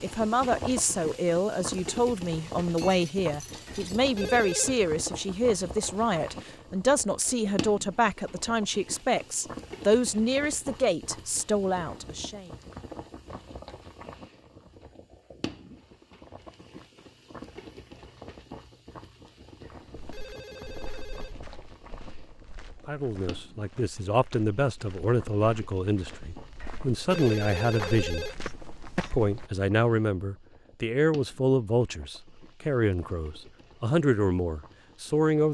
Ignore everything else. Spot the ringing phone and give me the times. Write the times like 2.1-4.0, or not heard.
3.6-4.8, 19.6-21.4, 26.6-28.4.